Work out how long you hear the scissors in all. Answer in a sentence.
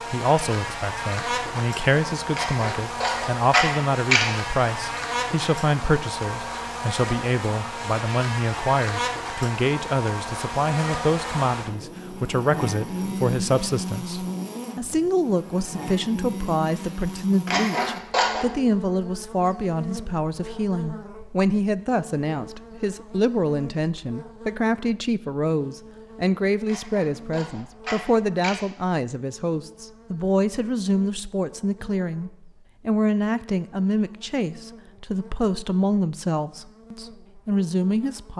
The scissors can be heard for 5 seconds in total.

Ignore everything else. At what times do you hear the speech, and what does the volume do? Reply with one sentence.
You can hear the speech from 0.1 to 38.3 s, at a steady volume.